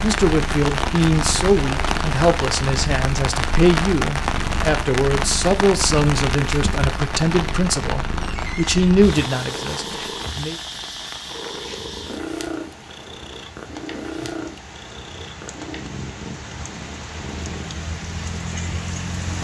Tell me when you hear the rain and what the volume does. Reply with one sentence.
The rain can be heard from 0.0 to 19.3 s, getting quieter then louder.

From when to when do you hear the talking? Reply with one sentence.
The talking can be heard from 0.0 to 10.6 s.